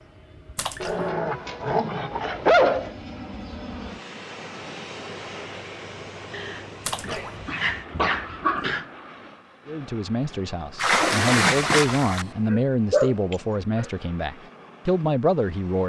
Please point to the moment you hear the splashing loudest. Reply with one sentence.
The loudest moment of the splashing is at 11 seconds.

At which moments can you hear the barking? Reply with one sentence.
You can hear the barking from 0.8 to 2.9 s, from 6.3 to 8.8 s and from 12.5 to 13.8 s.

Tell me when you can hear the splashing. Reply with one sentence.
The splashing can be heard from 0.6 to 1.1 s, from 6.8 to 7.3 s and from 10.8 to 12.3 s.